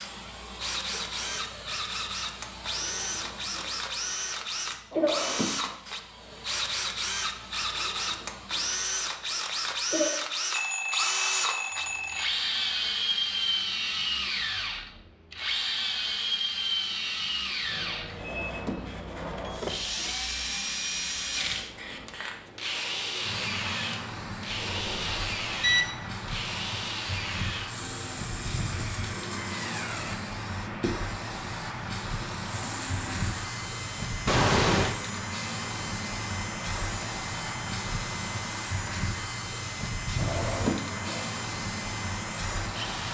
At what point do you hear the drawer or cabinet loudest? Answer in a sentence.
The loudest moment of the drawer or cabinet is at 41 seconds.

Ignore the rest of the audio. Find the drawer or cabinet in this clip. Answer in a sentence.
The drawer or cabinet can be heard from 4.9 to 5.8 s, from 18.1 to 20.1 s and from 40.1 to 41.3 s.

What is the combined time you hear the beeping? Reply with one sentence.
You can hear the beeping for 4 seconds altogether.